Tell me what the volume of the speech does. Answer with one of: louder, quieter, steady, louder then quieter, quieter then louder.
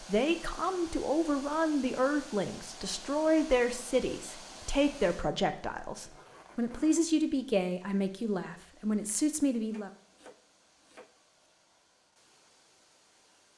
steady.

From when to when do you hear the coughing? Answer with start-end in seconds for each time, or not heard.
not heard.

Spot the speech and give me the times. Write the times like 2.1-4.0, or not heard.
0.0-9.9.